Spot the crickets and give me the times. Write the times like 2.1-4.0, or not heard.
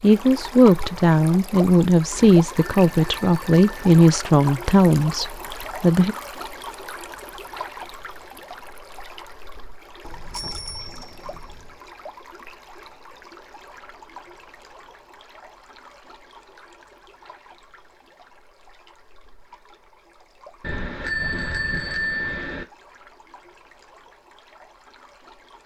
not heard.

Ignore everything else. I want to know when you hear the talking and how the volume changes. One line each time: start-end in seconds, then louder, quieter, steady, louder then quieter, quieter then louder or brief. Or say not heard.
0.0-6.2 steady.